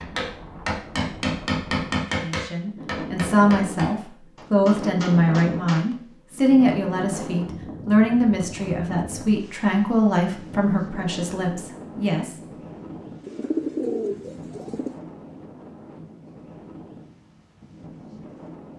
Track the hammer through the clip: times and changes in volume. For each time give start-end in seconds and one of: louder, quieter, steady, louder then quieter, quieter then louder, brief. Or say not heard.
0.0-5.8 quieter.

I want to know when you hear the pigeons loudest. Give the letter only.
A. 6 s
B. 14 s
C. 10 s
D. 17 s
B.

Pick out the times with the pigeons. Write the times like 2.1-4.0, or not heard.
13.2-15.0.